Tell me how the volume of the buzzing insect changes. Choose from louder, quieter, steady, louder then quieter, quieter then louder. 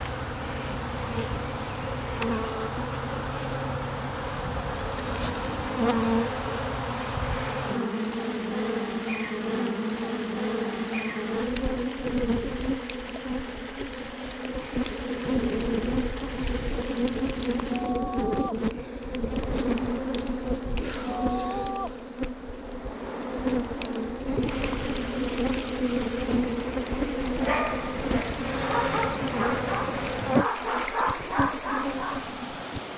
steady.